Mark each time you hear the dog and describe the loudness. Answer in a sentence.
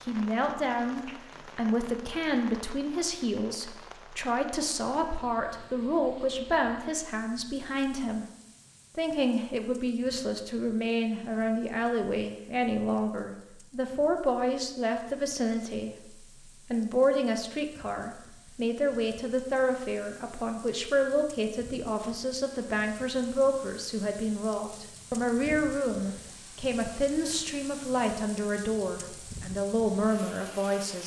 The dog can't be heard in this clip.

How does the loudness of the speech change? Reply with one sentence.
The volume of the speech stays about the same.